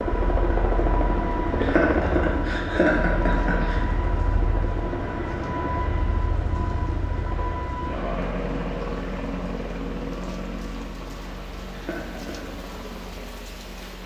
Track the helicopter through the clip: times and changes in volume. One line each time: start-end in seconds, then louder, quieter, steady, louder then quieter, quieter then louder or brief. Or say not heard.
0.0-14.0 quieter.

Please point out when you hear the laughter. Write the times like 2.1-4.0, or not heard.
1.6-3.8, 11.7-12.4.